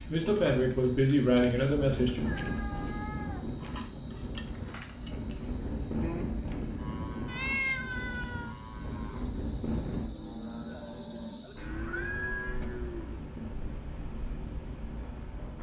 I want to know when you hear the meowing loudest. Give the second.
8 s.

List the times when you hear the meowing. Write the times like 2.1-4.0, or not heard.
2.2-3.5, 7.2-8.6, 11.8-12.4.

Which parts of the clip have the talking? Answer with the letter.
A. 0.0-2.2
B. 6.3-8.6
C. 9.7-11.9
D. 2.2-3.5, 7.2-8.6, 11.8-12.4
A.